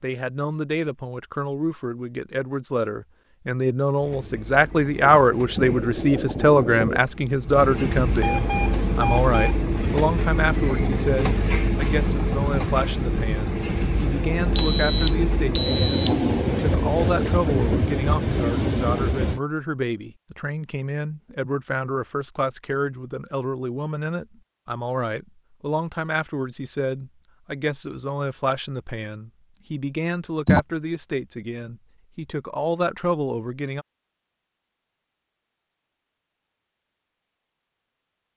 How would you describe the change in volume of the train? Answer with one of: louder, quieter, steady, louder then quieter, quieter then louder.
louder.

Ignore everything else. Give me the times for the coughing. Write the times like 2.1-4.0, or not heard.
not heard.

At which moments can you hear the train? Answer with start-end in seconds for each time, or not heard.
4.0-19.4.